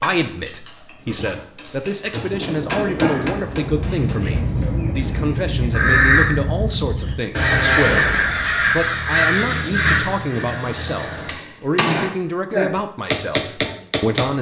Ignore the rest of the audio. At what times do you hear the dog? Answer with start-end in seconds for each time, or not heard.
0.7-3.2.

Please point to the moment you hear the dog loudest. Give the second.
3 s.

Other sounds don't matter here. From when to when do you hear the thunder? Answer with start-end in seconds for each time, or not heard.
2.3-5.4.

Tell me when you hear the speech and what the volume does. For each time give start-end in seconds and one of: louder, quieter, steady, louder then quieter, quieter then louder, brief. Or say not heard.
0.0-14.3 steady.